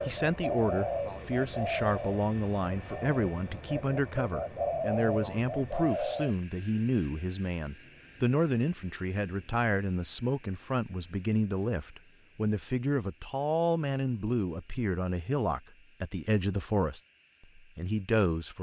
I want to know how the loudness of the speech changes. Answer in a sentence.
The loudness of the speech stays about the same.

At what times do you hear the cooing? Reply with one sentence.
You can hear the cooing from 0.0 to 6.3 s.